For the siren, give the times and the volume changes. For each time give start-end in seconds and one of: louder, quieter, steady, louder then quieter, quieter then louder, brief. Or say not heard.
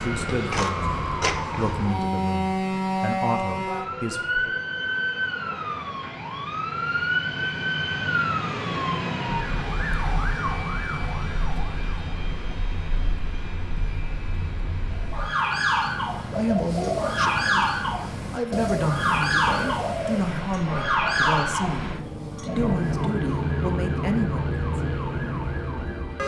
0.0-26.2 quieter then louder.